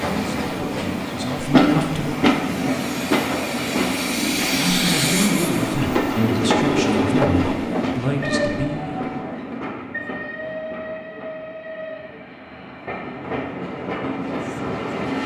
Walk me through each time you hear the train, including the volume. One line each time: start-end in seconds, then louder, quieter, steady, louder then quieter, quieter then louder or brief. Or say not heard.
0.0-15.2 quieter.